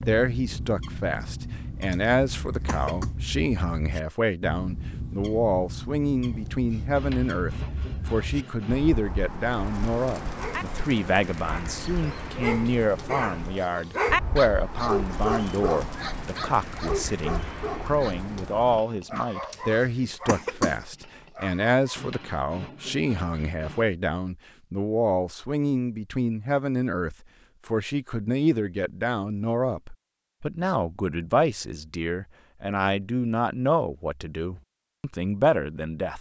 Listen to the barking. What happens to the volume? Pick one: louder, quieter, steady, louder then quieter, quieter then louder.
louder then quieter.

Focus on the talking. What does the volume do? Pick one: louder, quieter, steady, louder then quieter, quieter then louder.
steady.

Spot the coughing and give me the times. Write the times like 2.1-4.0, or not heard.
1.9-3.1, 19.5-20.9.